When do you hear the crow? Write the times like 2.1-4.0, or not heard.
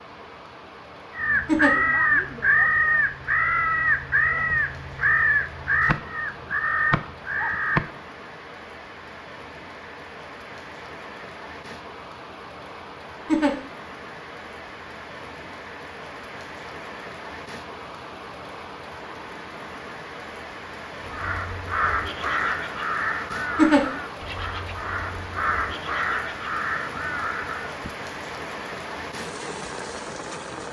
1.1-7.9, 21.0-27.9.